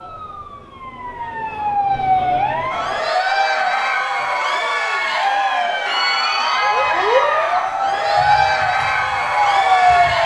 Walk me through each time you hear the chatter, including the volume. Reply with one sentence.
The chatter can be heard from 2.7 to 10.2 s, at a steady volume.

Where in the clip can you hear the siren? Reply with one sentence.
The siren can be heard from 0.0 to 3.1 s and from 6.5 to 10.2 s.